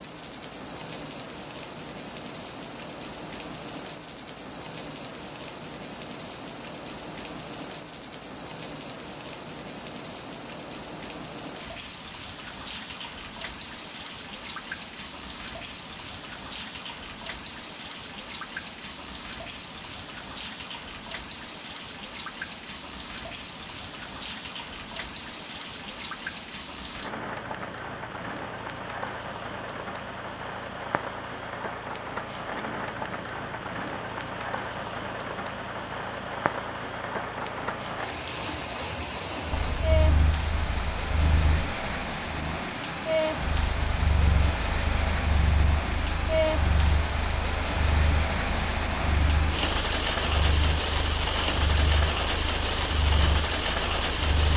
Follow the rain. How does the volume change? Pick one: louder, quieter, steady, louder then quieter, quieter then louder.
louder.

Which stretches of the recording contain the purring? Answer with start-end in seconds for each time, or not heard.
39.5-54.5.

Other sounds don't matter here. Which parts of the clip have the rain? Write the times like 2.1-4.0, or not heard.
0.0-54.5.